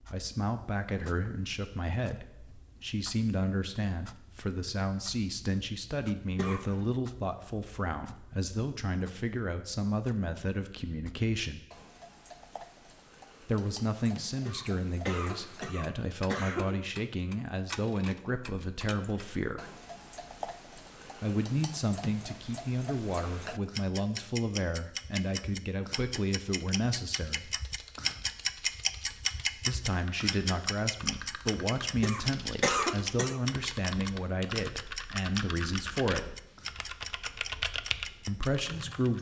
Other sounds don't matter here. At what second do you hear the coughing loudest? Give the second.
33 s.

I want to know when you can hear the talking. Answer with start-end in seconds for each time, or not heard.
0.1-11.7, 13.4-19.7, 21.2-27.5, 29.6-36.4, 38.2-39.1.